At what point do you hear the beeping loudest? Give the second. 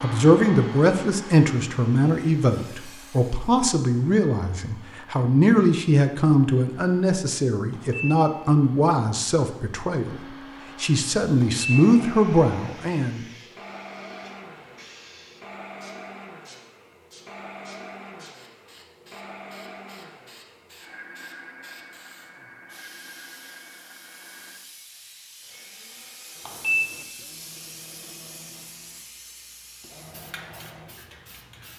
27 s.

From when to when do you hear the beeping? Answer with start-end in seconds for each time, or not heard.
7.7-8.2, 11.4-11.8, 26.4-27.1.